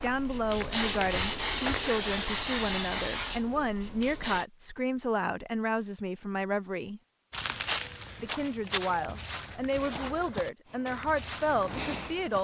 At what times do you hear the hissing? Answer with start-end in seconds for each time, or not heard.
0.0-4.5, 10.7-12.3.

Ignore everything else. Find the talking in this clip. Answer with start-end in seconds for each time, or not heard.
0.0-7.0, 8.2-12.3.